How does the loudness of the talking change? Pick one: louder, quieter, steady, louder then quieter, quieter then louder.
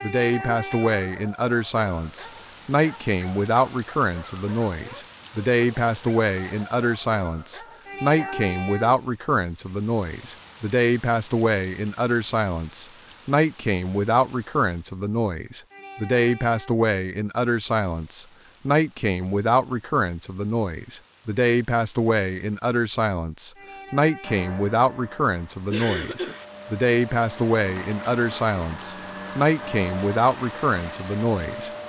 steady.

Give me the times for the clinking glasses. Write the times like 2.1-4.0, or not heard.
not heard.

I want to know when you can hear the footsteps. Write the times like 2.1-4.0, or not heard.
not heard.